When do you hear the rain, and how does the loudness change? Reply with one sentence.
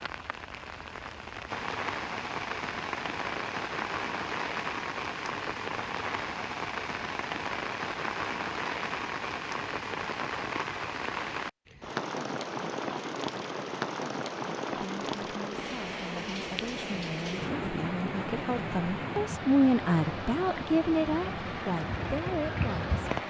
You can hear the rain from 0.0 to 23.2 s, at a steady volume.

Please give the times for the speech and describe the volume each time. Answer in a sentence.
You can hear the speech from 14.8 to 22.9 s, getting louder then quieter.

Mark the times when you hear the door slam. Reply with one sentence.
You can't hear the door slam here.